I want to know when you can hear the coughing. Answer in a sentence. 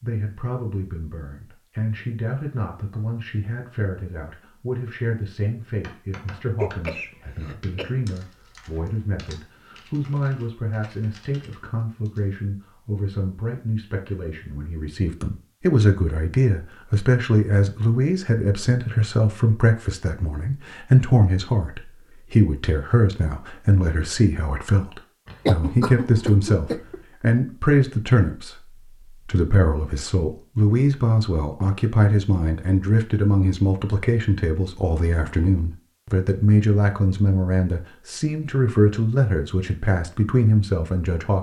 You can hear the coughing from 6.6 to 7.9 s and from 25.2 to 27.0 s.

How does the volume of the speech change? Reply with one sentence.
The loudness of the speech goes up.